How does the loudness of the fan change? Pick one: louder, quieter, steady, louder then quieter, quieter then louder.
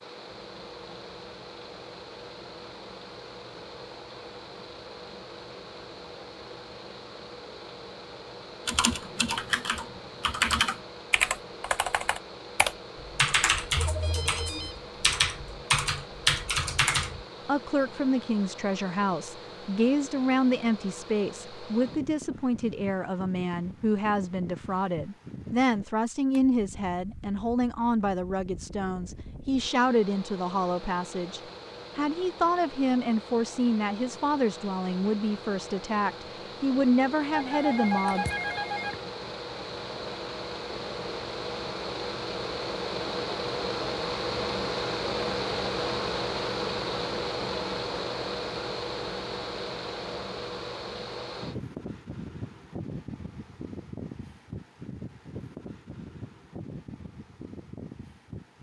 louder.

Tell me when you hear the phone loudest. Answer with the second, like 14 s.
38 s.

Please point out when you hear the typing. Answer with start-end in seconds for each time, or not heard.
8.7-17.2.